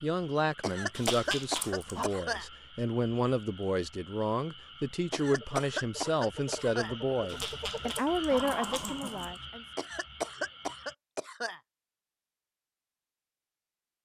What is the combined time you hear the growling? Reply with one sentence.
The growling can be heard for 3 seconds in total.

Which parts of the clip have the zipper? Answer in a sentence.
The zipper can't be heard in this clip.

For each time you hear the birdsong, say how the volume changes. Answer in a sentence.
You can't hear the birdsong here.